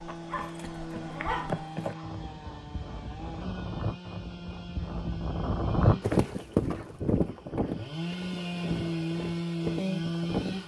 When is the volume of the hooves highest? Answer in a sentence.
The volume of the hooves peaks at 6 seconds.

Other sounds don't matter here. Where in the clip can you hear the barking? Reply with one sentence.
You can hear the barking from 0.1 to 2.0 s.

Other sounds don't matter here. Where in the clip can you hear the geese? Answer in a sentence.
The geese can't be heard in this clip.